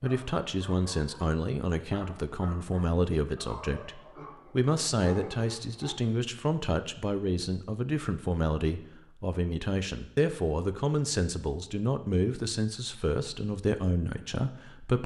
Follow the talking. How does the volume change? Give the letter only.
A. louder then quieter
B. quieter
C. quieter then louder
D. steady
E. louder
D.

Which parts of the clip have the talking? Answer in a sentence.
You can hear the talking from 0.0 to 15.0 s.